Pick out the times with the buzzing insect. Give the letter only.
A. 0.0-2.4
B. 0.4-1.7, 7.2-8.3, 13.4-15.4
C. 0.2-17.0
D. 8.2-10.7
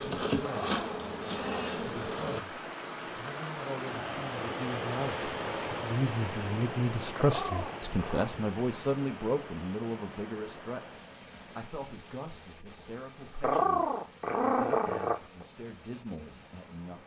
A.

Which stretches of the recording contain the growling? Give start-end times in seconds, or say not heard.
0.4-1.7, 7.2-8.3, 13.4-15.4.